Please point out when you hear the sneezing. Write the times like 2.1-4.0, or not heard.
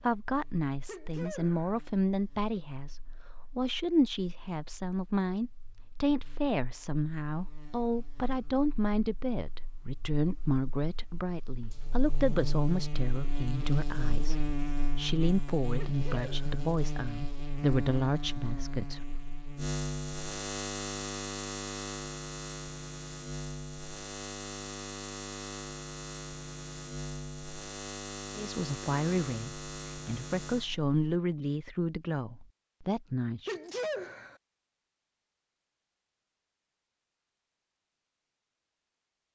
0.8-1.8, 15.8-16.6, 33.5-34.4.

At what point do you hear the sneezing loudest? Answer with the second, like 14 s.
34 s.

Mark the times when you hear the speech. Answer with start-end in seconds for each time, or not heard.
0.0-19.1, 28.4-33.5.